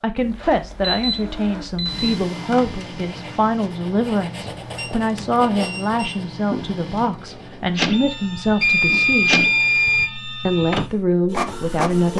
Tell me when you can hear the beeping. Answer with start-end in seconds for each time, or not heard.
0.1-2.1, 4.8-6.0, 8.6-10.1.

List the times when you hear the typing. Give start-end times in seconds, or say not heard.
not heard.